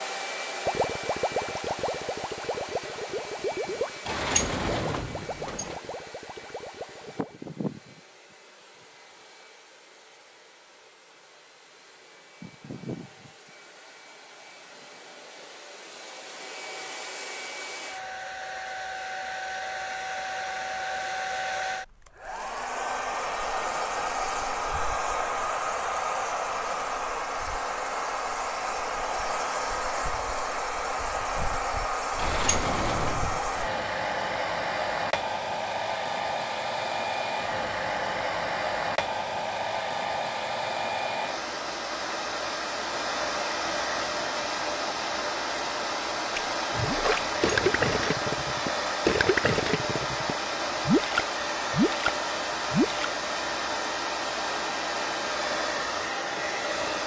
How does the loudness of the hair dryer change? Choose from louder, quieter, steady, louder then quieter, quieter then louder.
louder.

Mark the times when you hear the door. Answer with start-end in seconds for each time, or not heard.
4.0-5.8, 32.1-33.4, 47.1-47.9.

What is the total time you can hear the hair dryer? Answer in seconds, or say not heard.
57 s.